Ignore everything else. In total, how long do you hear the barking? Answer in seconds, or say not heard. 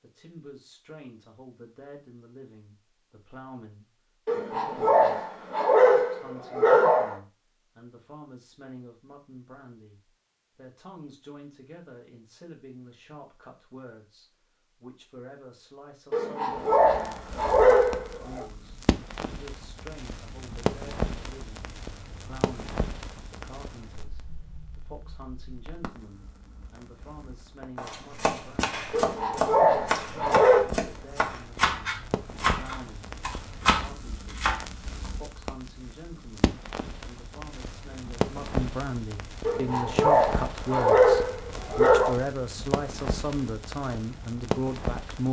10 s.